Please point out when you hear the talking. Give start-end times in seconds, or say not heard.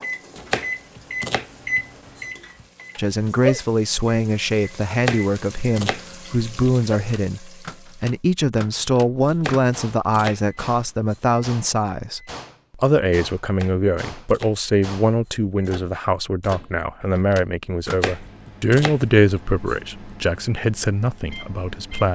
3.0-22.1.